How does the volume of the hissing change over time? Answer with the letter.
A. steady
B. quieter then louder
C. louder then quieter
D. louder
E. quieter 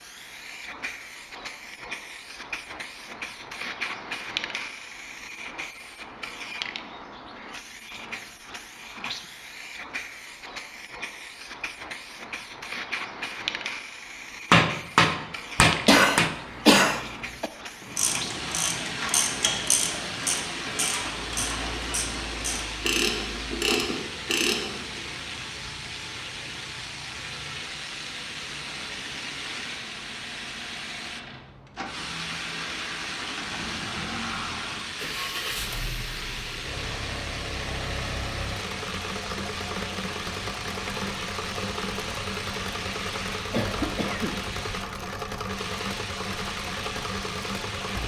A.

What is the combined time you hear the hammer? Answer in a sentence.
The hammer can be heard for 2 seconds in total.